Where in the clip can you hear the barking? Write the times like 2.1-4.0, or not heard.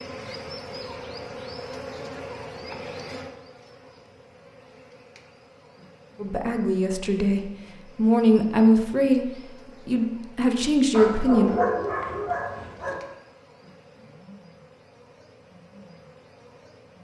10.9-12.9.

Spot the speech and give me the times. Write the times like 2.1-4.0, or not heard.
6.2-11.5.